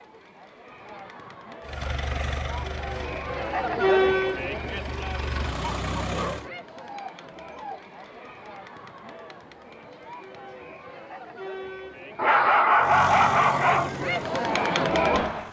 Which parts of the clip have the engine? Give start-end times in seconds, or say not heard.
1.6-6.5, 12.8-15.4.